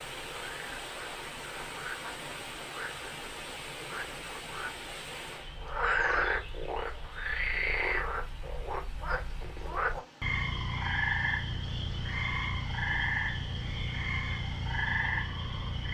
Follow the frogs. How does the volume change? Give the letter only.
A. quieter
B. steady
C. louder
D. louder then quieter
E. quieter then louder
C.